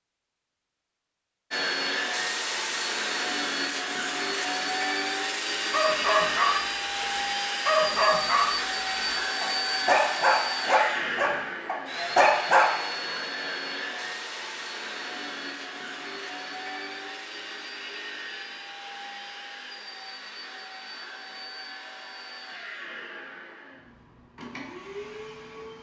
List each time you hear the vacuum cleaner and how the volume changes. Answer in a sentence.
You can hear the vacuum cleaner from 1.5 to 25.7 s, getting quieter.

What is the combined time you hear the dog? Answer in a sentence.
You can hear the dog for 7 seconds altogether.